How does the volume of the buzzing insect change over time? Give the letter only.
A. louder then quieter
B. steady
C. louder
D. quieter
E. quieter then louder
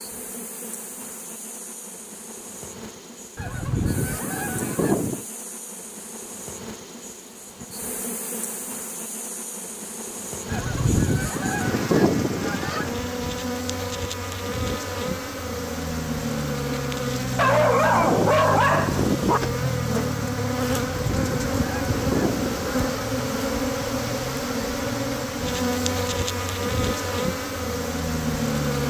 C.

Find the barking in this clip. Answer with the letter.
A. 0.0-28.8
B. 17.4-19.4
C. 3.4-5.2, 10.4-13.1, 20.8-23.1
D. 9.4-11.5
B.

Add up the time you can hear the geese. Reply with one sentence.
The geese can be heard for 7 seconds in total.